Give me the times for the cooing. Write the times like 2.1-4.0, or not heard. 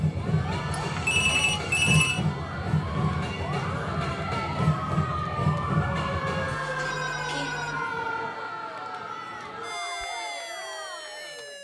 not heard.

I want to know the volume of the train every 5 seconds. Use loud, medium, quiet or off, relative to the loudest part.
loud, loud, off.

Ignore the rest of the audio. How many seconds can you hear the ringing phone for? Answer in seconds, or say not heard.
3 s.